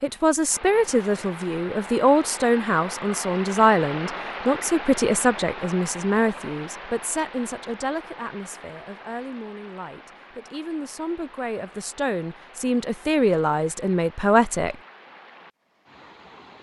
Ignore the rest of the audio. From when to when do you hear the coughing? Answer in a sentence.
The coughing can't be heard in this clip.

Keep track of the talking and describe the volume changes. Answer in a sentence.
The loudness of the talking goes down, then up.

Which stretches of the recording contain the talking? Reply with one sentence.
The talking can be heard from 0.0 to 14.8 s.